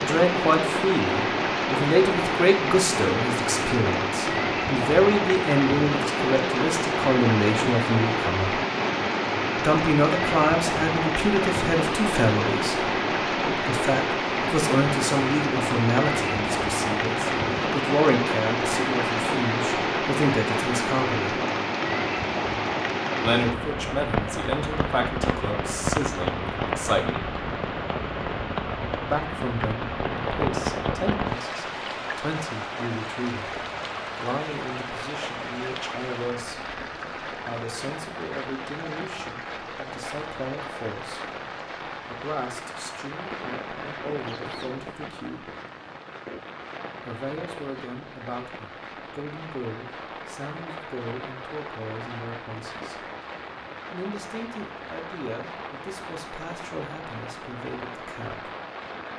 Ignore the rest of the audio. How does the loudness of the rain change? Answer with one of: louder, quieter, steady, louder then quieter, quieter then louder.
quieter.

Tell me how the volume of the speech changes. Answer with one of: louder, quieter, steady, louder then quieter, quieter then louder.
quieter.